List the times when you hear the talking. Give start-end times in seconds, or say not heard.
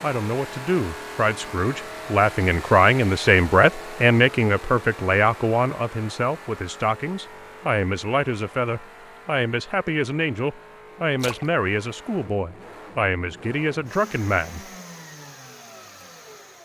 0.0-14.7.